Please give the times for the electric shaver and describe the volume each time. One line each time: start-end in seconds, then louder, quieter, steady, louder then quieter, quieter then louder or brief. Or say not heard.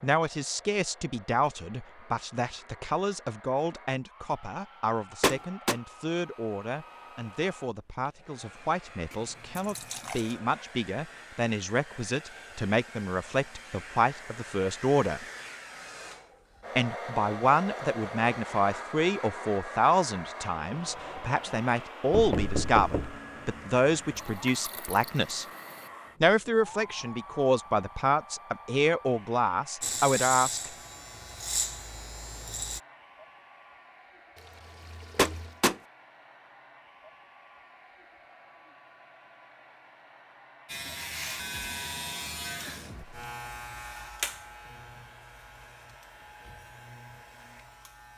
29.8-32.8 brief
40.6-48.1 quieter.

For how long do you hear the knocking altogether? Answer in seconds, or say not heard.
2 s.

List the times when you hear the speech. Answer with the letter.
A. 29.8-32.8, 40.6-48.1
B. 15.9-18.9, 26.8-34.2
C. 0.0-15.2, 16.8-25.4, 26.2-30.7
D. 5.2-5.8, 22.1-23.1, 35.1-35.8
C.